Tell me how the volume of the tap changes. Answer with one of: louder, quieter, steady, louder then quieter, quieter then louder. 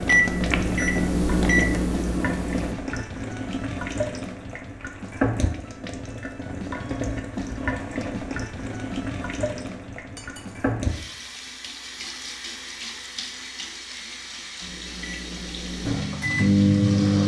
quieter.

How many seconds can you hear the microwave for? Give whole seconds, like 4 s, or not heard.
5 s.